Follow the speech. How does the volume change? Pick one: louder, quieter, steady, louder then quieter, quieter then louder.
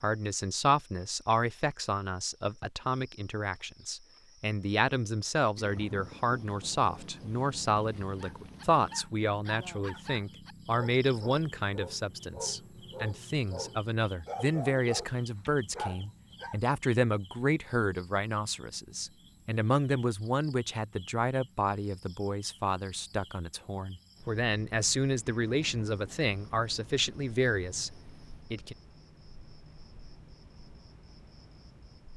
steady.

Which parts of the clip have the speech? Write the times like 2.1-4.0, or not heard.
0.0-28.8.